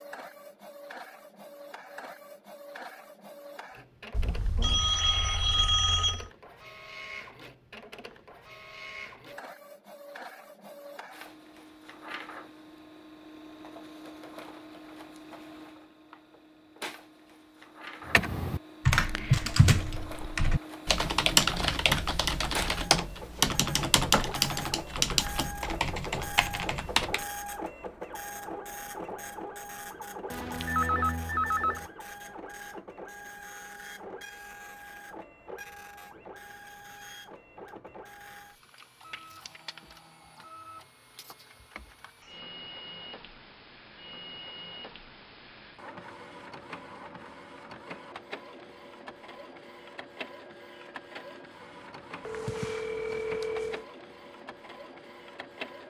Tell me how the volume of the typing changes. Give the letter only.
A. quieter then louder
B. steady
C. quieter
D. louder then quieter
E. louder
C.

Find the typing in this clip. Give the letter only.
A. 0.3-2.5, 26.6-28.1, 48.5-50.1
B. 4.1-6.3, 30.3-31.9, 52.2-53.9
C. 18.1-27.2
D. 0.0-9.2
C.